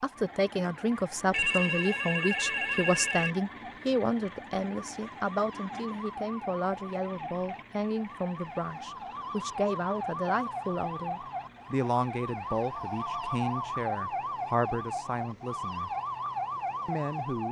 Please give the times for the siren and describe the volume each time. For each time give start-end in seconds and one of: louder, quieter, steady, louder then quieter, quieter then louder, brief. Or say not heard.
0.0-17.4 louder.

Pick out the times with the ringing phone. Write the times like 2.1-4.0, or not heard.
1.3-3.4, 12.7-13.8.